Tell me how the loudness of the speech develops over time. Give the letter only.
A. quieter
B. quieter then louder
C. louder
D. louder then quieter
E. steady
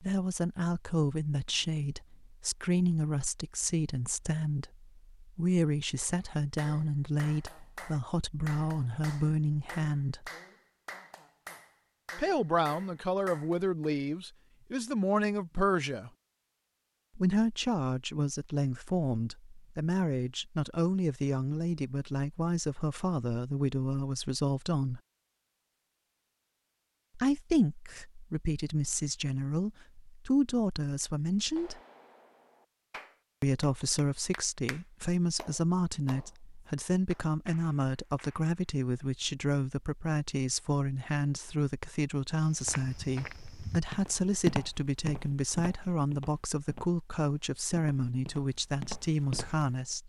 E.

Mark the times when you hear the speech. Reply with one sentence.
The speech can be heard from 0.0 to 10.3 s, from 12.2 to 16.1 s, from 17.1 to 25.0 s, from 27.1 to 31.8 s and from 33.4 to 50.0 s.